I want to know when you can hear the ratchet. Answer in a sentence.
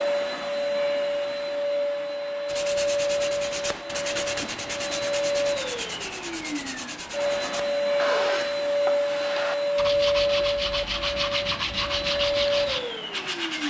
The ratchet can't be heard in this clip.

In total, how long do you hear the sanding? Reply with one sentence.
You can hear the sanding for 11 seconds altogether.